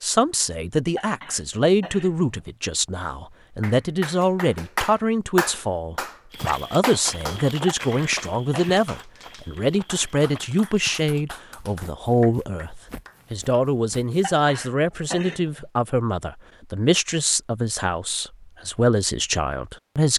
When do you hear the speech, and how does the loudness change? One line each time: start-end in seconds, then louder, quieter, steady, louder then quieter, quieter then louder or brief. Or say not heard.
0.0-20.1 steady.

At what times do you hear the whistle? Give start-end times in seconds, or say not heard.
not heard.